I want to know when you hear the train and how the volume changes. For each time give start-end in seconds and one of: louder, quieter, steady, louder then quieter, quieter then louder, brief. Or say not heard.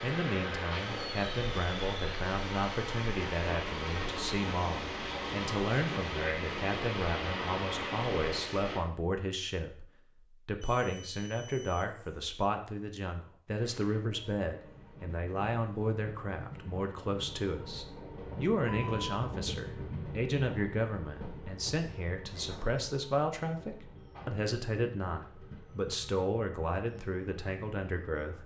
0.0-8.8 steady
13.6-28.4 louder then quieter.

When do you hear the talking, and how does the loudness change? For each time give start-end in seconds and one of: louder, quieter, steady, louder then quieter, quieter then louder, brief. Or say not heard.
0.0-9.8 steady
10.4-28.4 steady.